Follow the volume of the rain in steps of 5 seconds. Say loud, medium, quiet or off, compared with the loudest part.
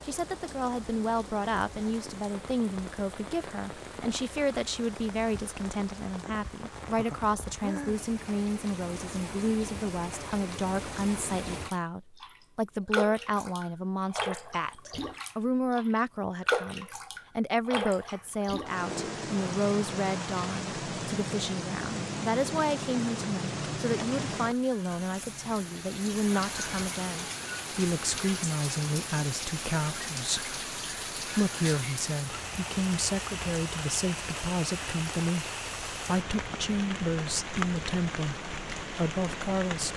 medium, medium, loud, loud, loud, loud, loud, loud.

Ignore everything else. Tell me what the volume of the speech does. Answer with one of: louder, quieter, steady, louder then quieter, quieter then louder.
steady.